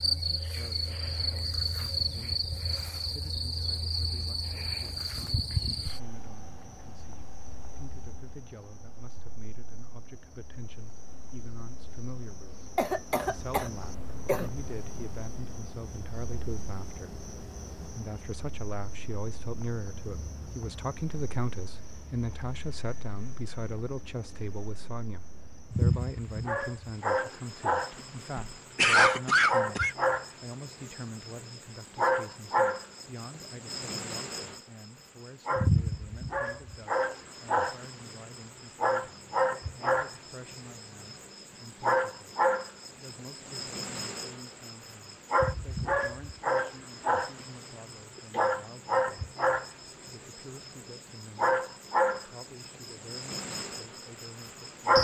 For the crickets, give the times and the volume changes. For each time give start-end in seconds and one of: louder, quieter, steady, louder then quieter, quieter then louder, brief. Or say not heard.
0.0-54.9 quieter then louder.